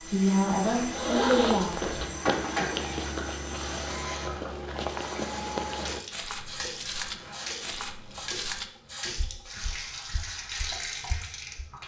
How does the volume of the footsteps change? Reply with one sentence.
The volume of the footsteps goes down.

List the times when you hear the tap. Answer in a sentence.
The tap can be heard from 0.0 to 11.8 s.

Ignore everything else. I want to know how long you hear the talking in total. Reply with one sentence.
The talking can be heard for 2 seconds in total.